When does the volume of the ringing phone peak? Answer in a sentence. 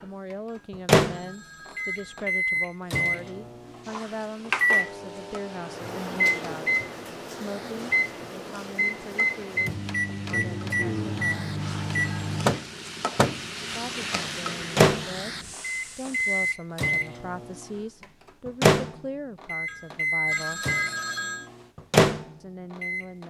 The volume of the ringing phone peaks at 21 seconds.